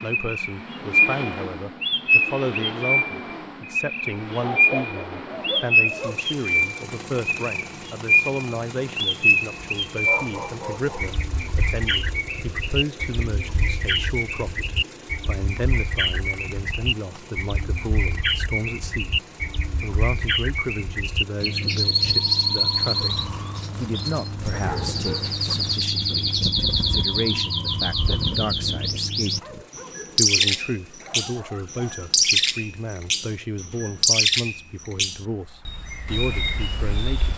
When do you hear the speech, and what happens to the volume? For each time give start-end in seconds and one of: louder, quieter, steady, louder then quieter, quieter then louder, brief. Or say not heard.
0.0-37.3 steady.